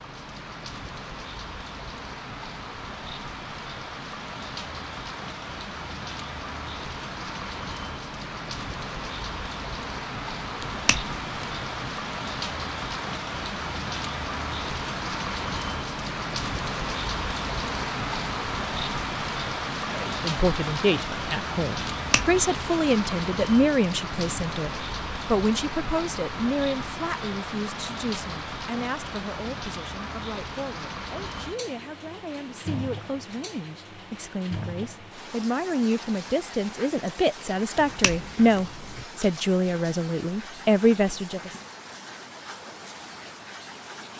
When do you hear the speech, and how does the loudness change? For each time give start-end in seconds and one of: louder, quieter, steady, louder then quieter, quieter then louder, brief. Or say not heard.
19.9-41.5 quieter then louder.